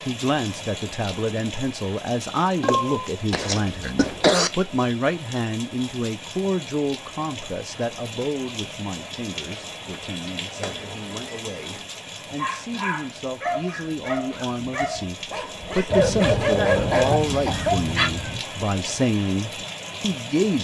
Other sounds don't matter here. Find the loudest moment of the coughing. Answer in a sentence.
The volume of the coughing peaks at 4 seconds.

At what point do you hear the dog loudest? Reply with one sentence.
The volume of the dog peaks at 17 seconds.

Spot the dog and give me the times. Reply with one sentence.
You can hear the dog from 12.3 to 18.1 s.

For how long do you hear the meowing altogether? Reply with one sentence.
The meowing can be heard for 5 seconds in total.